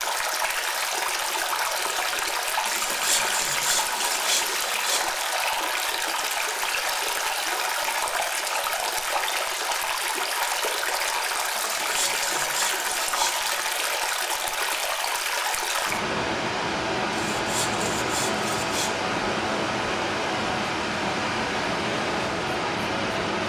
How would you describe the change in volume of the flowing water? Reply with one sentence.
The volume of the flowing water stays about the same.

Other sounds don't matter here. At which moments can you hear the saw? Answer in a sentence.
The saw can be heard from 2.6 to 5.0 s, from 11.6 to 13.7 s and from 17.4 to 18.9 s.